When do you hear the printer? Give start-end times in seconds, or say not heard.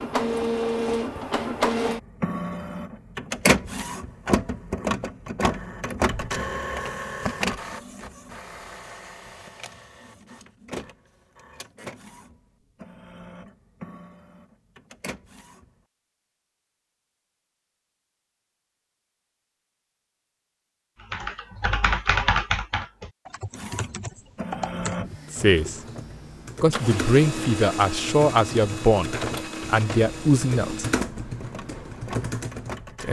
0.0-15.8, 23.5-33.0.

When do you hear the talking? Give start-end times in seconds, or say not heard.
25.3-25.8, 26.6-30.9.